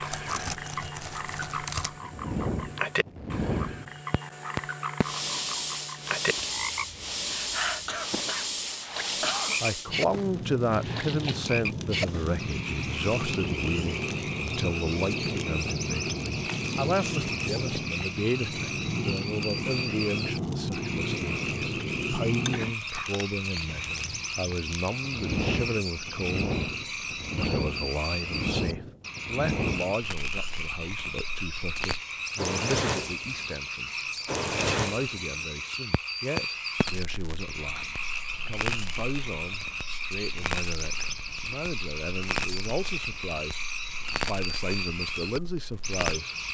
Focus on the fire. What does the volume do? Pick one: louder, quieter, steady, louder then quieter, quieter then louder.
quieter.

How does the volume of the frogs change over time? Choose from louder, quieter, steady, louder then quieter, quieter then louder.
steady.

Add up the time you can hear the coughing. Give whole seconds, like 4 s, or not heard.
2 s.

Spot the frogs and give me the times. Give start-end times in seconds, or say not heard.
0.0-46.4.